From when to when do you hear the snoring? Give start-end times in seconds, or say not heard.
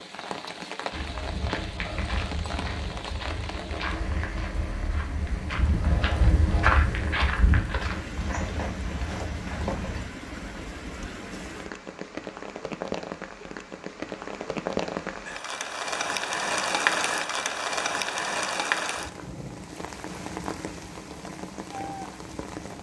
not heard.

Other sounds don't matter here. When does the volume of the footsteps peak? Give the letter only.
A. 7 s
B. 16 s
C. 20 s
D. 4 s
A.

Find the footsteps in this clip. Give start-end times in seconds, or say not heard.
0.9-10.1.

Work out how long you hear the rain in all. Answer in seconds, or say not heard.
23 s.